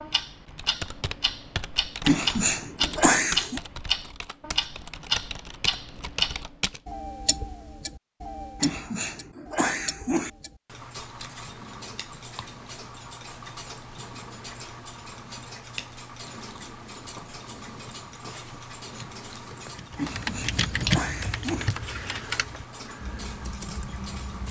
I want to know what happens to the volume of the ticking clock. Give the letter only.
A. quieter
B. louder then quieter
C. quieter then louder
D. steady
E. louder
A.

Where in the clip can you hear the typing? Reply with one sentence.
You can hear the typing from 0.5 to 6.8 s and from 19.8 to 24.4 s.